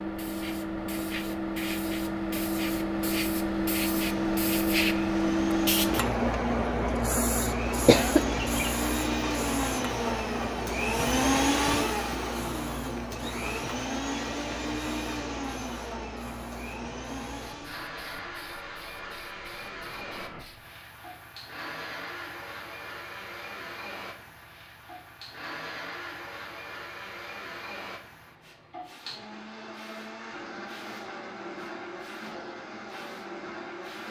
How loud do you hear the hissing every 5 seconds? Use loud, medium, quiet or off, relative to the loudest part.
loud, loud, medium, quiet, quiet, quiet, quiet.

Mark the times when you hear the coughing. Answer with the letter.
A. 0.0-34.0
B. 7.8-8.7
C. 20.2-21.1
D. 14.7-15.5
B.